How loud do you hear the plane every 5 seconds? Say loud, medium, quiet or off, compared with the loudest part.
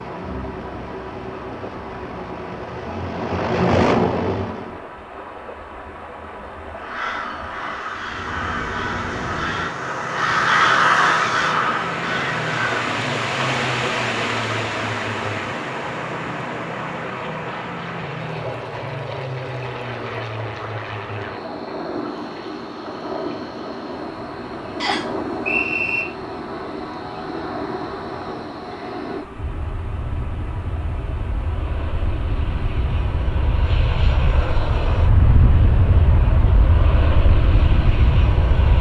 loud, medium, medium, medium, medium, medium, medium, loud.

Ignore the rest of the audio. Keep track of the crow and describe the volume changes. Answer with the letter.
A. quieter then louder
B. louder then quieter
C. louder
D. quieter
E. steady
B.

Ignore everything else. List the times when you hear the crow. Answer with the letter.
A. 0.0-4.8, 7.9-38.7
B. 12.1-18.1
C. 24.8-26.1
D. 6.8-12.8
D.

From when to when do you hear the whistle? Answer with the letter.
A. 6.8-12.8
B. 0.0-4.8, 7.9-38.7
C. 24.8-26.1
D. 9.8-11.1
C.